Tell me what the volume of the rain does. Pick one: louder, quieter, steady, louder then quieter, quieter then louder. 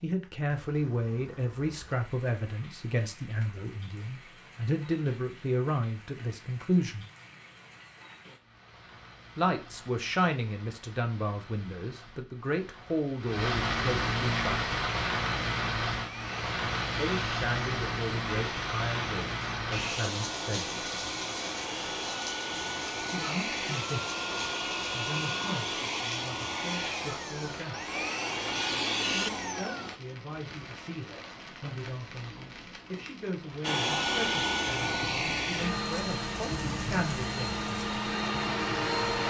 louder then quieter.